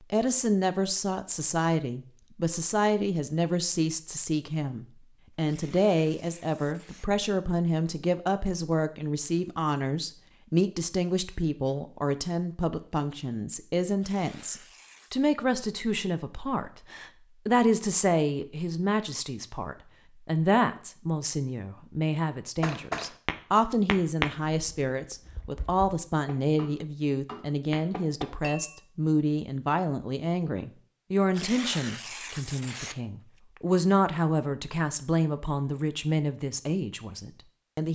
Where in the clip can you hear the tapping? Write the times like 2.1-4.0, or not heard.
22.6-28.8.